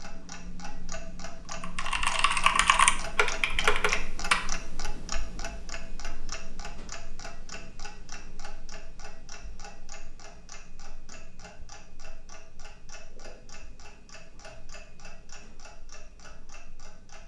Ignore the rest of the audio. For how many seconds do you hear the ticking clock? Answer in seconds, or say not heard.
17 s.